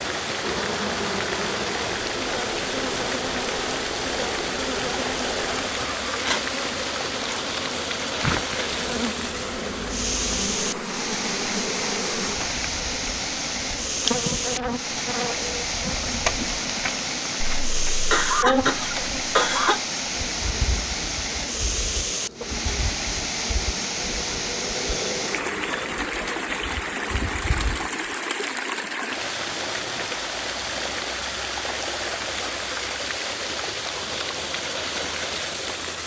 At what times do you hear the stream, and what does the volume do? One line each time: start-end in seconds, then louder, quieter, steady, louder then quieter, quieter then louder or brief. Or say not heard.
0.0-36.0 steady.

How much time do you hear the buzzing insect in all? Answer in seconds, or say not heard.
28 s.